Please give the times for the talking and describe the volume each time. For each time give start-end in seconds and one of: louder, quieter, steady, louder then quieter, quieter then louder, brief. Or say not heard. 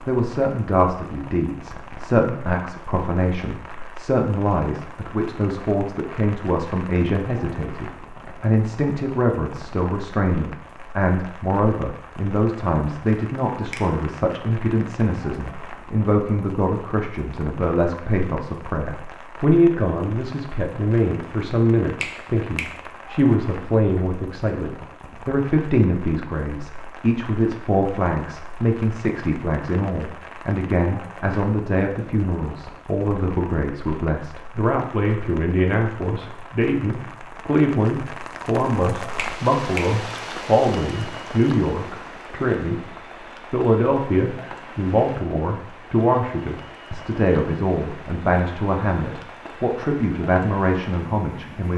0.1-42.9 steady
43.5-51.7 steady.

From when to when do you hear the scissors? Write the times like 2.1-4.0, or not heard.
not heard.